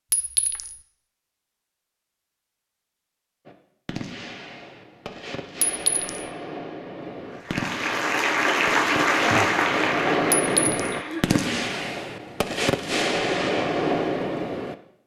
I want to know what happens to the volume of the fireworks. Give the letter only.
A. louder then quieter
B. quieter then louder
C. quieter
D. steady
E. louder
E.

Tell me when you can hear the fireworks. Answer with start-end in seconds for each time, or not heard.
3.5-14.8.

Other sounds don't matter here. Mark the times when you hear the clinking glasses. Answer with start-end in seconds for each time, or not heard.
0.1-0.8, 5.7-6.2, 10.3-10.9.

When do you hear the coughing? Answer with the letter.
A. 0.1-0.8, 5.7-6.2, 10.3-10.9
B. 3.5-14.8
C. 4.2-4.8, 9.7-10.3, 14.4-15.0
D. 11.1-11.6
D.